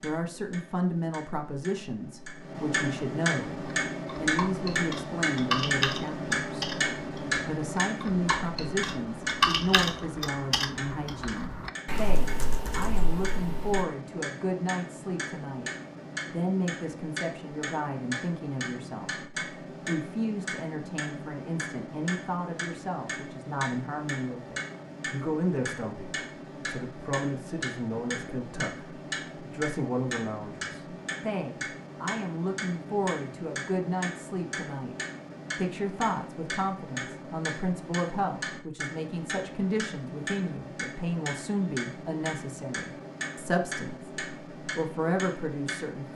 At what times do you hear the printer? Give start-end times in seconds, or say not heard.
not heard.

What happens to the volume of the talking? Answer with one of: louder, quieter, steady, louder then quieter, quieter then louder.
steady.